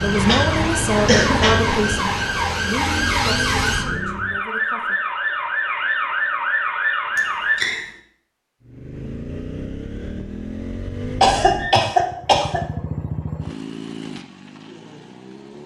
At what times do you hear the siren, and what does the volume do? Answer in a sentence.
The siren can be heard from 0.0 to 7.6 s, at a steady volume.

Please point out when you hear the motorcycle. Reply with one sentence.
You can hear the motorcycle from 0.0 to 4.5 s and from 8.6 to 15.6 s.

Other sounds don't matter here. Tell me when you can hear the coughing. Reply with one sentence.
You can hear the coughing from 0.2 to 1.6 s, from 7.2 to 7.8 s and from 11.2 to 12.6 s.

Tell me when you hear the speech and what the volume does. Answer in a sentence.
You can hear the speech from 0.0 to 5.0 s, getting quieter.